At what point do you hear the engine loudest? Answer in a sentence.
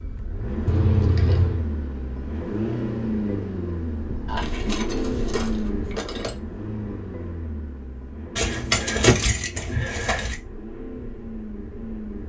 The loudest moment of the engine is at 3 seconds.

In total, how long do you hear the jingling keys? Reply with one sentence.
You can hear the jingling keys for 5 seconds altogether.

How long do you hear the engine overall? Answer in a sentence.
The engine can be heard for 12 seconds in total.